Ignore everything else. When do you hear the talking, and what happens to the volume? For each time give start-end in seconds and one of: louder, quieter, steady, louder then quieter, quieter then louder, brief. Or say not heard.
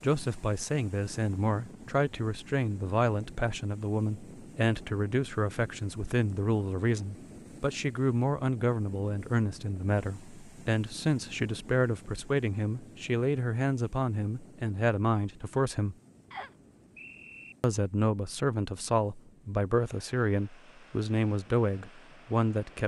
0.0-15.9 steady
17.6-22.8 steady.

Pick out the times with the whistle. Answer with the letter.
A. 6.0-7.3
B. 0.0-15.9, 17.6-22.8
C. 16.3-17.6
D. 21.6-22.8
C.